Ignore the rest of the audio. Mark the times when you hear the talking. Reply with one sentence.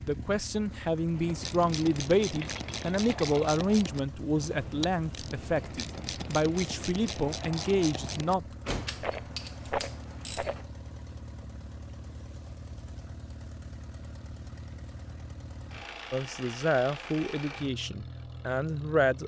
You can hear the talking from 0.0 to 8.6 s and from 16.1 to 19.2 s.